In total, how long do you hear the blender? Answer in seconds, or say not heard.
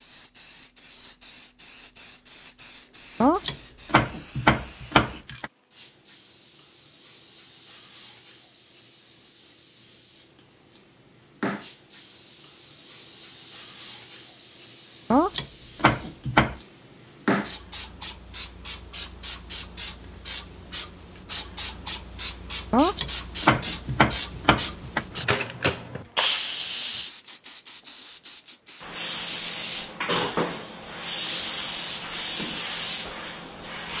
not heard.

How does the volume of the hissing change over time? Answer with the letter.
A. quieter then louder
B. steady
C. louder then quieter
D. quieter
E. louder
E.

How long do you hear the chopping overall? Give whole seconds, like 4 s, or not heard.
6 s.